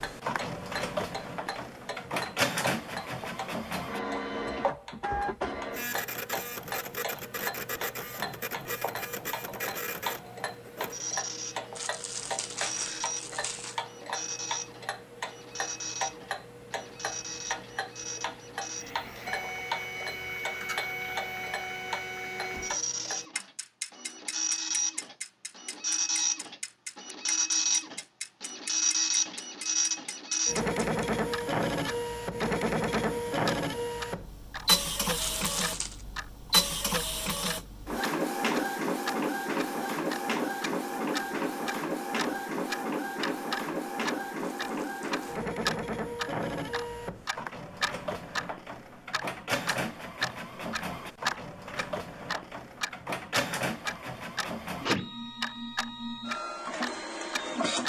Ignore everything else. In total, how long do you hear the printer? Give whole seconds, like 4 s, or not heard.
58 s.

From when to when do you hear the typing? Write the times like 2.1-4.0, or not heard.
not heard.